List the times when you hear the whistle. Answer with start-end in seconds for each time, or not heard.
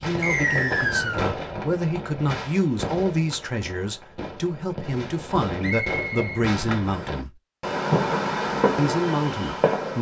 0.2-1.4, 5.6-7.1.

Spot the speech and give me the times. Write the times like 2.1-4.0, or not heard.
0.0-7.3, 8.8-9.9.